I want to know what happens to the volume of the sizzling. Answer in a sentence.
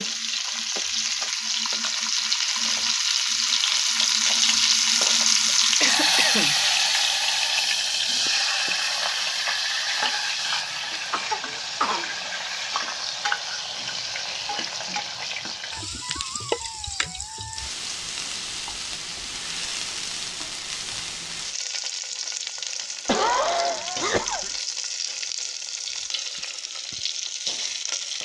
The loudness of the sizzling goes down.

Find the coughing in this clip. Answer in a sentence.
The coughing can be heard from 5.3 to 6.5 s, from 11.1 to 12.1 s and from 23.1 to 24.5 s.